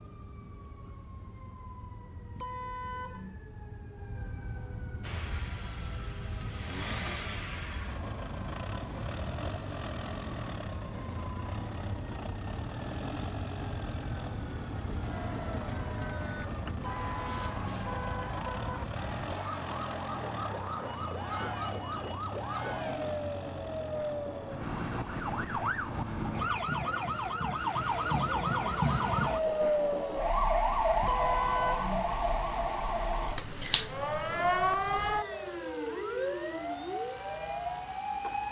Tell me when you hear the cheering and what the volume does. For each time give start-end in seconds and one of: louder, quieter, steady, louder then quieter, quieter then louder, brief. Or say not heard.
15.0-23.1 steady.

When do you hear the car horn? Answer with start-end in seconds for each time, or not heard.
2.4-3.4, 16.8-18.8, 31.0-32.1.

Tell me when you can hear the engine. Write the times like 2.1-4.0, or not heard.
5.0-38.4.